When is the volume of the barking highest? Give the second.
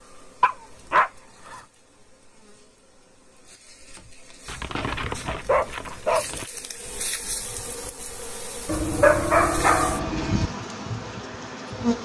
9 s.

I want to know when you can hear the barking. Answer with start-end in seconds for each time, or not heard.
0.4-1.6, 4.5-6.5, 8.7-10.5.